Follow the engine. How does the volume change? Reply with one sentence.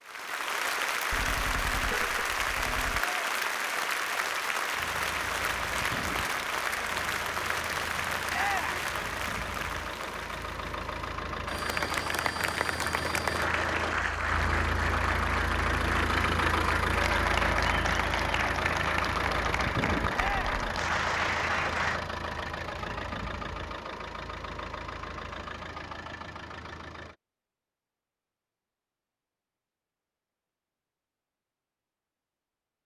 The loudness of the engine goes up, then down.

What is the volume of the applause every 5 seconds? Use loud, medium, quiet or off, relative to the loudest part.
loud, loud, loud, loud, loud, off, off.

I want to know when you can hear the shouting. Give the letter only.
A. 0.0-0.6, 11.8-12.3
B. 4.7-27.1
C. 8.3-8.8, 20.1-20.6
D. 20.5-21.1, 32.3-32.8
C.